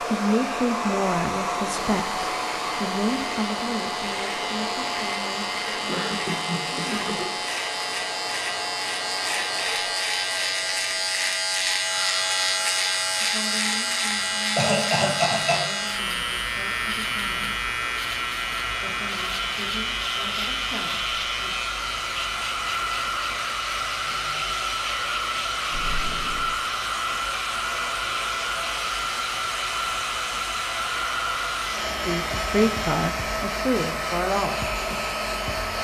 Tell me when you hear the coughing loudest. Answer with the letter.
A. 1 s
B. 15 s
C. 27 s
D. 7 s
B.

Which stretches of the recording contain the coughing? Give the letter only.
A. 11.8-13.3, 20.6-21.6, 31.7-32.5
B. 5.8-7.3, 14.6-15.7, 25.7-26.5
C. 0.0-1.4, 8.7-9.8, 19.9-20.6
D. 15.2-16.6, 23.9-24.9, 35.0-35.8
B.